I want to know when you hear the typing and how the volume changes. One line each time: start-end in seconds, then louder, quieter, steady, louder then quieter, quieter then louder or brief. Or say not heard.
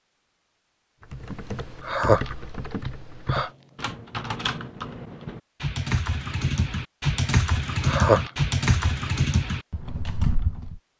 1.0-10.8 louder.